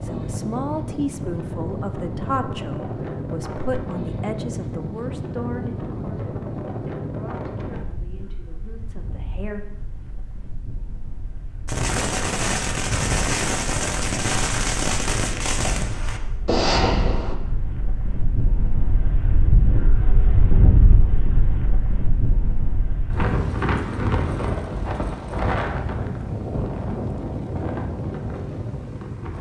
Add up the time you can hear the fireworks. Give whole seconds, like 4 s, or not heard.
6 s.